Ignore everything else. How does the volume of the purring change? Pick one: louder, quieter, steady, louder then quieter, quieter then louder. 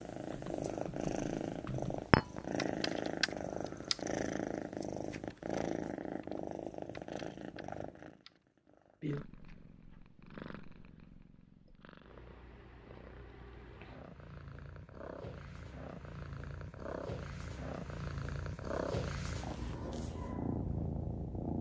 quieter then louder.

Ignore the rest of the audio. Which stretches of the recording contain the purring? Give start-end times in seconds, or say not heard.
0.0-21.5.